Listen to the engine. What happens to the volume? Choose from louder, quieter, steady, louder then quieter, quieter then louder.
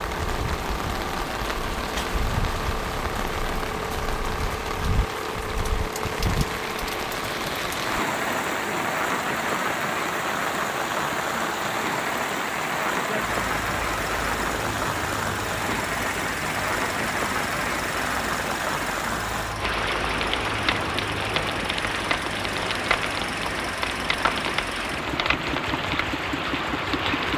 steady.